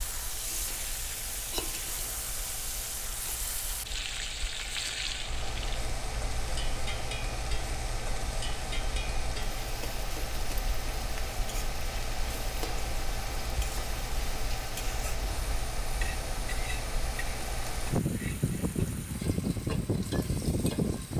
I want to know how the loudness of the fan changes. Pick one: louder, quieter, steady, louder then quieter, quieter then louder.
louder.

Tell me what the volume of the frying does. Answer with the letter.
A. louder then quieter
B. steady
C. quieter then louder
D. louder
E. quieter
E.